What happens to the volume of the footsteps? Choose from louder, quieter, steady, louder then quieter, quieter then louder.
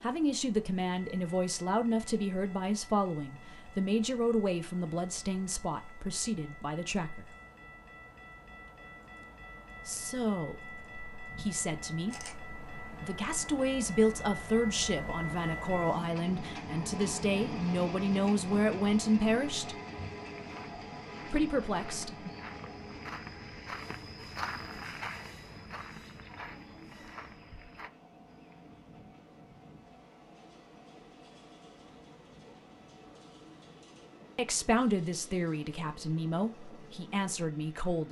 louder then quieter.